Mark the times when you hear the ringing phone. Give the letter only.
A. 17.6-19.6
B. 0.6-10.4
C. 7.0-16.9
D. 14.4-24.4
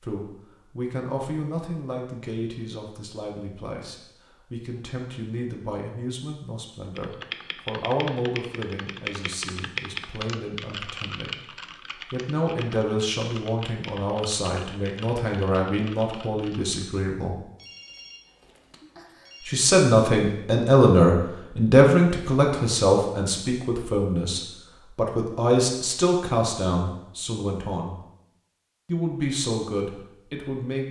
A.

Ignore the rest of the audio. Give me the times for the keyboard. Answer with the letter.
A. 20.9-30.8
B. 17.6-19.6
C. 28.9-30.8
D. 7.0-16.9
D.